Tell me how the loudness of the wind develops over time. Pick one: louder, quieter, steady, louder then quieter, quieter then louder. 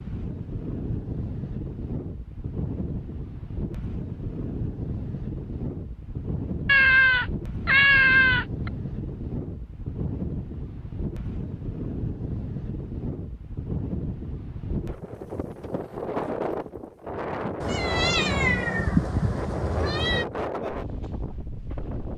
steady.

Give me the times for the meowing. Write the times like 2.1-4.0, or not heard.
6.7-8.7, 17.6-20.2.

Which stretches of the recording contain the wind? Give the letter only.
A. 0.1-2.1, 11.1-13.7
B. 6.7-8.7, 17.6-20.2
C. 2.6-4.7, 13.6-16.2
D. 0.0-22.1
D.